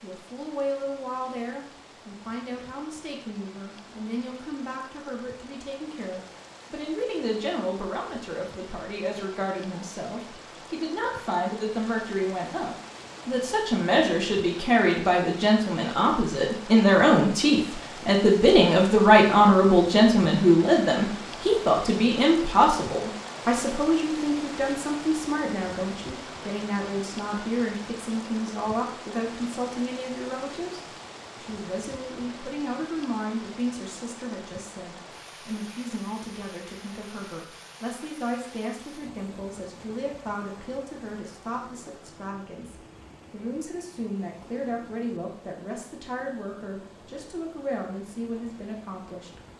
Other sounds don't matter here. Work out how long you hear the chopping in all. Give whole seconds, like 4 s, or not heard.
not heard.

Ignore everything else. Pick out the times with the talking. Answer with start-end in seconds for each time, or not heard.
0.0-30.8, 31.4-49.5.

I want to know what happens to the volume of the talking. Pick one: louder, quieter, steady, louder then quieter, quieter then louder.
louder then quieter.